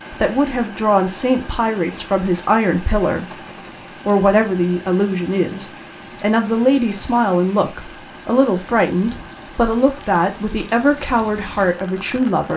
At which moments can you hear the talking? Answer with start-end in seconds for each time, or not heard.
0.1-3.5, 4.0-12.5.